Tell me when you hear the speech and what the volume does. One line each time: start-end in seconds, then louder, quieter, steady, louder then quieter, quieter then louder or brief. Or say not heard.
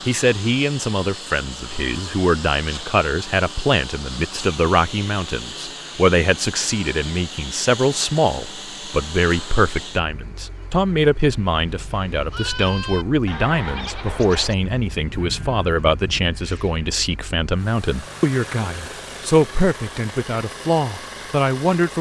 0.1-21.9 steady.